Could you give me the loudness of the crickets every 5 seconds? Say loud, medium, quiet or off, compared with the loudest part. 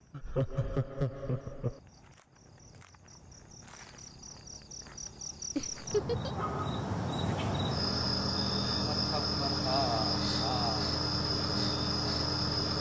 quiet, loud, loud.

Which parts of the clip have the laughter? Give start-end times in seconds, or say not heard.
0.1-1.8, 5.5-6.3, 8.9-10.9.